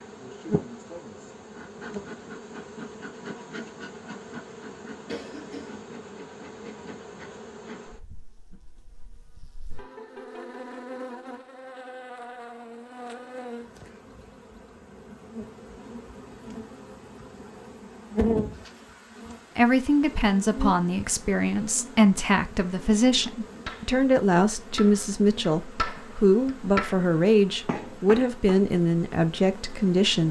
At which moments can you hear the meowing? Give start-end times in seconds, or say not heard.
not heard.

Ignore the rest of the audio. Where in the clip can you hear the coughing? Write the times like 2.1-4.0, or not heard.
5.0-5.8.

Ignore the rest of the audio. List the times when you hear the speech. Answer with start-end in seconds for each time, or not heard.
19.6-30.2.